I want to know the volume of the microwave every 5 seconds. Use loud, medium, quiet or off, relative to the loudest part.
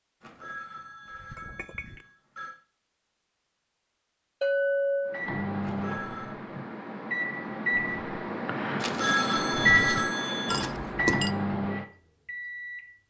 off, loud, loud.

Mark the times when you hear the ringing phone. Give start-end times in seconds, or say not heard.
0.2-2.5, 5.6-6.3, 8.8-10.7.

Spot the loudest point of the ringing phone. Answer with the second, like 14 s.
9 s.